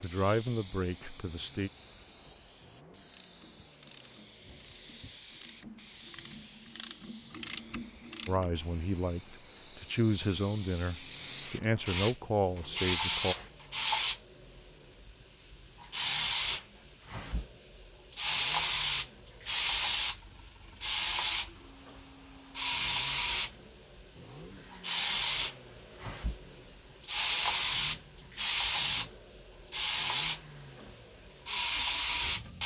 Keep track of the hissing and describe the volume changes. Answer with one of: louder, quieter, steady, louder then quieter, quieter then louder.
louder.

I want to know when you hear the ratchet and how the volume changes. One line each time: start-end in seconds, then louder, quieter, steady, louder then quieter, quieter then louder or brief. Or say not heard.
3.2-8.6 louder.